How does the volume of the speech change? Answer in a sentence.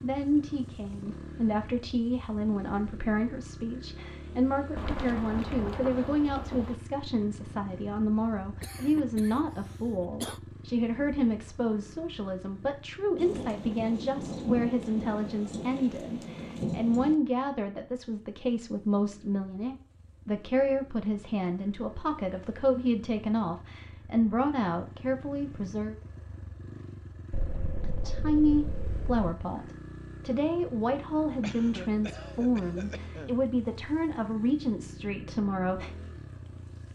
The volume of the speech stays about the same.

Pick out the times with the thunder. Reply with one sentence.
You can hear the thunder from 4.8 to 6.8 s, from 13.2 to 17.1 s and from 27.3 to 29.2 s.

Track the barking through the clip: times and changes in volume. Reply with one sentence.
You can't hear the barking here.